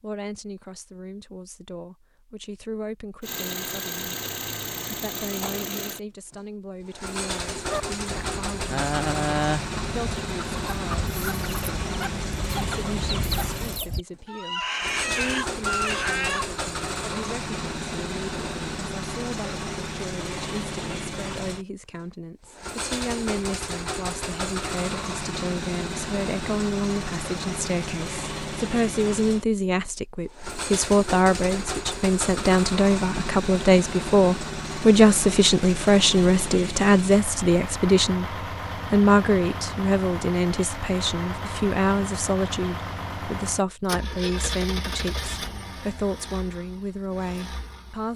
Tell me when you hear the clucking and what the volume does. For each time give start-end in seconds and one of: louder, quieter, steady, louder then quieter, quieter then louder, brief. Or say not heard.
7.7-16.4 quieter then louder.